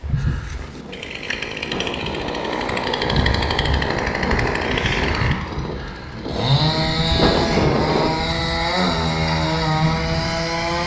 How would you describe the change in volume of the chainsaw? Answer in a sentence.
The loudness of the chainsaw goes up.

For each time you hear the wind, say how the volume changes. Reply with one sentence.
The wind can be heard from 0.0 to 8.1 s, getting louder.